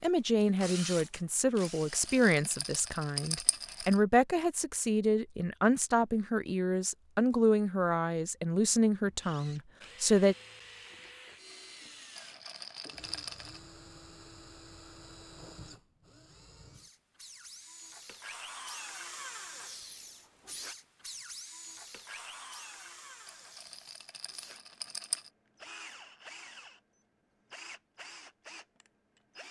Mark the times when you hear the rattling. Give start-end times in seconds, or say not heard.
1.6-4.0, 12.2-13.6, 23.2-25.3.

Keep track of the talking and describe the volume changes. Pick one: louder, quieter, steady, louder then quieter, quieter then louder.
steady.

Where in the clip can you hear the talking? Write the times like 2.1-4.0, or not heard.
0.0-10.3.